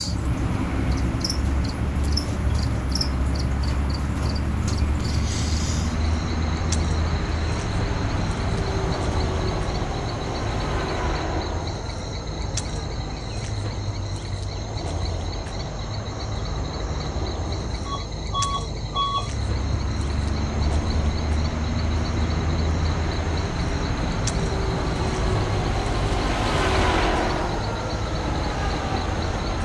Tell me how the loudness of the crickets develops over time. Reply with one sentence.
The loudness of the crickets stays about the same.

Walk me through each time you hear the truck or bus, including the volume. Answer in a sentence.
You can hear the truck or bus from 0.0 to 29.6 s, getting quieter then louder.